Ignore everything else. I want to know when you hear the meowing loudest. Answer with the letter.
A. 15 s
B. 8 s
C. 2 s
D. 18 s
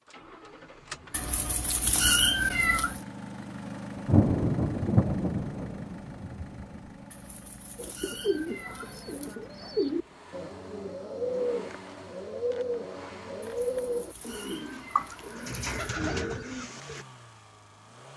C.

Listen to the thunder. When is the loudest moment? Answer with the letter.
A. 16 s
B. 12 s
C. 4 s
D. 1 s
C.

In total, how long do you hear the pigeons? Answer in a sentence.
The pigeons can be heard for 9 seconds in total.